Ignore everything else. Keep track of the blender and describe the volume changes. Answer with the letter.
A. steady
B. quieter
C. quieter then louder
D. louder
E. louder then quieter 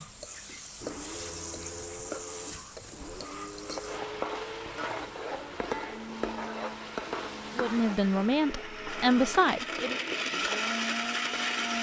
D.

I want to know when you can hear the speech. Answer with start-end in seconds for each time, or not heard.
7.5-10.0.